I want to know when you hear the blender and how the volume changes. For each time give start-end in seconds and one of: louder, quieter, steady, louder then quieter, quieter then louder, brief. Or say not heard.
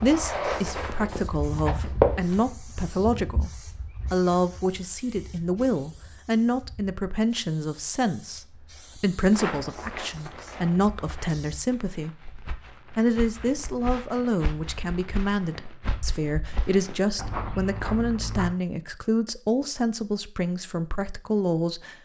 not heard.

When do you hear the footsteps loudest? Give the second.
2 s.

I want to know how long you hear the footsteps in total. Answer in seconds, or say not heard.
12 s.